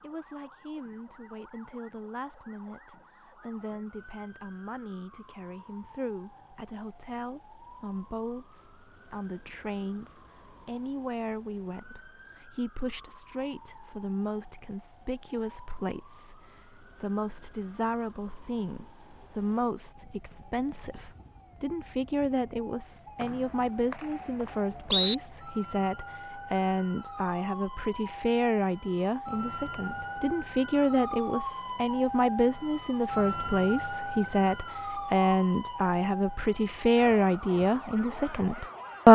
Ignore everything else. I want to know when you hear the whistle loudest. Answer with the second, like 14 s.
25 s.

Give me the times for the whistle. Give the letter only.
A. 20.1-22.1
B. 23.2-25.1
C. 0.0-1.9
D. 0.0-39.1
B.